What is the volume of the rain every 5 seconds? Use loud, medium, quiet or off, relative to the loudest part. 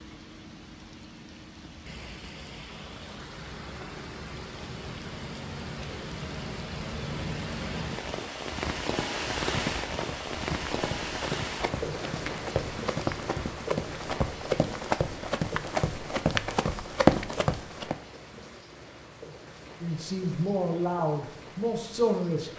medium, loud, loud, medium, quiet.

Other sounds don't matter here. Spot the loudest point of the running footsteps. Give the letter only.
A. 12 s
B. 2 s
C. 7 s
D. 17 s
D.